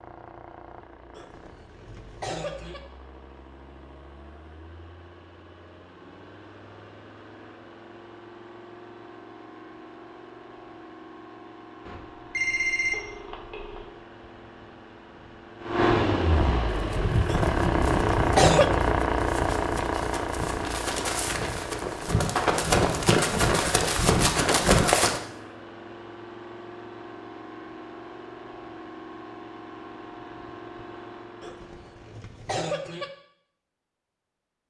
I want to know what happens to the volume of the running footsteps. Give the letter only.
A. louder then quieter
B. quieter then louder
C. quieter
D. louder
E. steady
D.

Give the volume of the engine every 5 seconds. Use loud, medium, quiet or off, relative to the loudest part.
quiet, quiet, quiet, loud, medium, quiet, quiet.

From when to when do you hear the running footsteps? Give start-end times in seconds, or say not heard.
16.7-25.2.